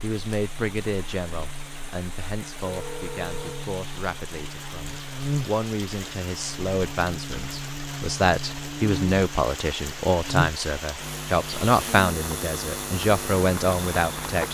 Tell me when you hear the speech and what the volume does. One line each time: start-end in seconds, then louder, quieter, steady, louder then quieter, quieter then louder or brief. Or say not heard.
0.0-14.5 louder.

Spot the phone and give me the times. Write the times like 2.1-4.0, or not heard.
2.6-3.7.